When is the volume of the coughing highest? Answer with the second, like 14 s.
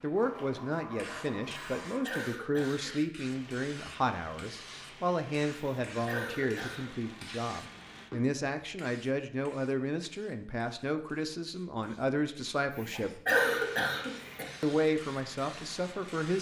13 s.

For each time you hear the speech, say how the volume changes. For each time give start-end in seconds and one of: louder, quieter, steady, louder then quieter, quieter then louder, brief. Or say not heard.
0.0-13.2 steady
14.6-16.3 brief.